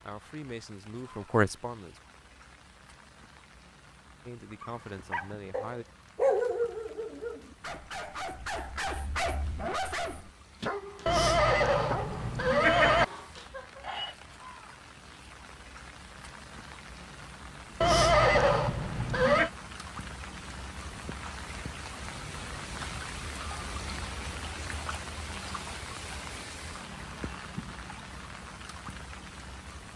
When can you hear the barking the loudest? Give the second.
6 s.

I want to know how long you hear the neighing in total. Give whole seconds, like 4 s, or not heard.
4 s.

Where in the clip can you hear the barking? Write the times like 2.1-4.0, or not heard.
4.6-14.2.